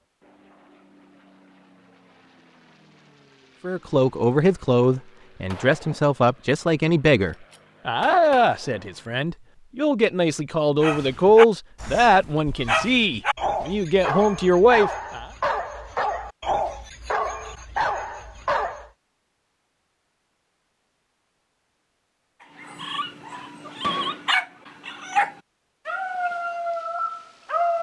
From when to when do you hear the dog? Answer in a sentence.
You can hear the dog from 10.8 to 18.9 s and from 22.6 to 27.7 s.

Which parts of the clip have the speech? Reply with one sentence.
The speech can be heard from 3.6 to 15.2 s.